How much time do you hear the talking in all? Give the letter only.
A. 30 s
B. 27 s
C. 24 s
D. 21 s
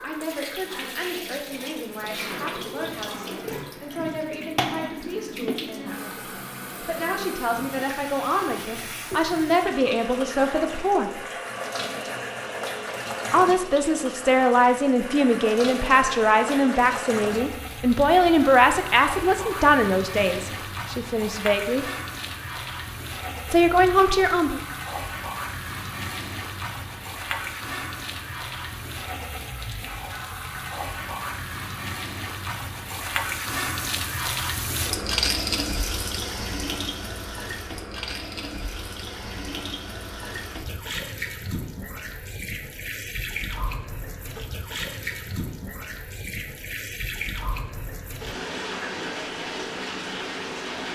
D.